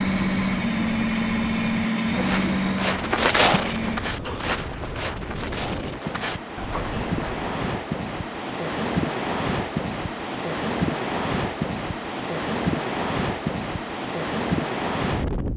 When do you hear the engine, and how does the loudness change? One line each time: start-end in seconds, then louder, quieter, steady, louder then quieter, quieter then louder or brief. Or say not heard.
0.0-4.5 quieter.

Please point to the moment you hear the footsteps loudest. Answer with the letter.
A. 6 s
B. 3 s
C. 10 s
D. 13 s
B.